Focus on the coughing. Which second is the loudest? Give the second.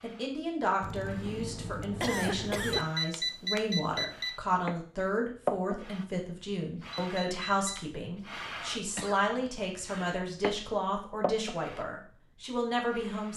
2 s.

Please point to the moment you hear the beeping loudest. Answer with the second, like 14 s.
3 s.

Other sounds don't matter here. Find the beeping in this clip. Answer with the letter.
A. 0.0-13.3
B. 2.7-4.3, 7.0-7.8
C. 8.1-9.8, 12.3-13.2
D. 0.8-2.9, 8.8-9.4
B.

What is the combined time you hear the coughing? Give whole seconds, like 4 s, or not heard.
3 s.